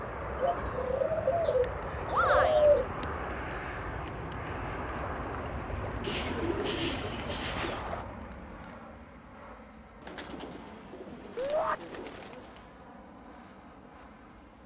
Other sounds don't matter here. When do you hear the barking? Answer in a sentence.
The barking can't be heard in this clip.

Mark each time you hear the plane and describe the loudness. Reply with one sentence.
You can hear the plane from 0.0 to 14.6 s, getting quieter.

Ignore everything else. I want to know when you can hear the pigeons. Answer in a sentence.
You can hear the pigeons from 0.4 to 2.9 s, from 6.0 to 7.8 s and from 10.0 to 12.7 s.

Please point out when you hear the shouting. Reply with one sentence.
The shouting can be heard from 2.1 to 2.7 s and from 11.3 to 11.8 s.